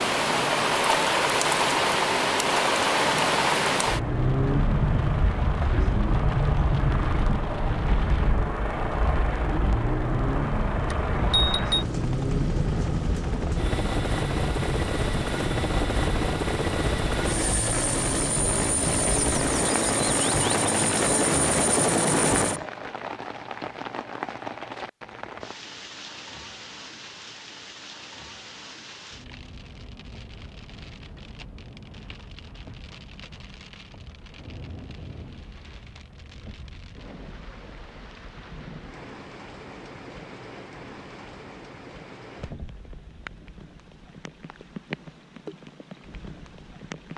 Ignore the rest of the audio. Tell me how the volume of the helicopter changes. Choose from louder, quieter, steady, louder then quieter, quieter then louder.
louder.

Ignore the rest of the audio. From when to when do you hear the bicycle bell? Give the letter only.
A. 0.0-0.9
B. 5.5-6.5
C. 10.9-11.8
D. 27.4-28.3
C.